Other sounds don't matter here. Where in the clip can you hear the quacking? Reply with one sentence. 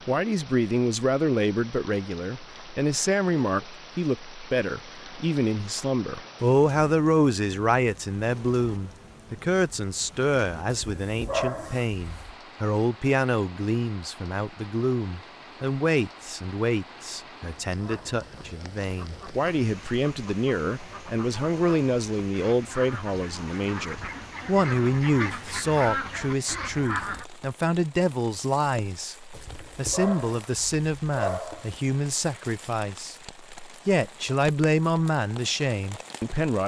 You can hear the quacking from 17.8 to 27.2 s.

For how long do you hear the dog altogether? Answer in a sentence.
The dog can be heard for 4 seconds in total.